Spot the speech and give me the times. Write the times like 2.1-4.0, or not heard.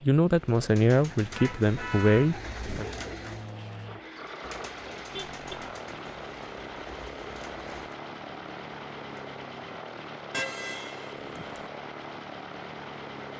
0.0-2.9.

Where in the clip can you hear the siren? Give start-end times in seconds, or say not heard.
not heard.